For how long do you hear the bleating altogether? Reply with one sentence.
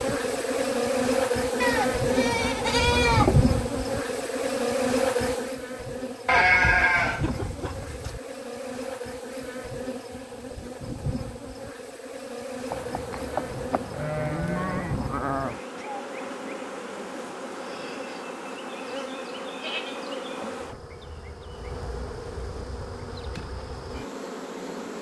You can hear the bleating for 8 seconds altogether.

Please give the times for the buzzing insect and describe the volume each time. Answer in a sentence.
You can hear the buzzing insect from 0.0 to 24.9 s, getting quieter.